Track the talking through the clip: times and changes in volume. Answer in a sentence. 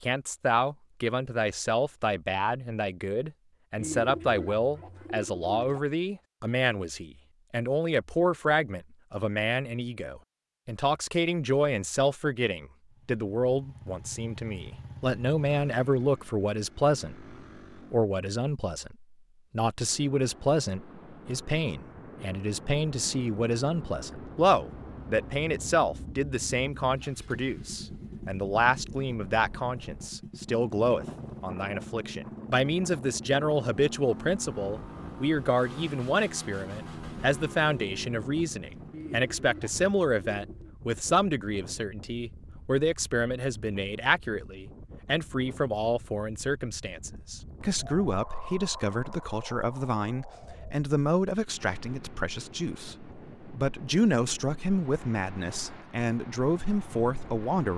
The talking can be heard from 0.0 to 57.7 s, at a steady volume.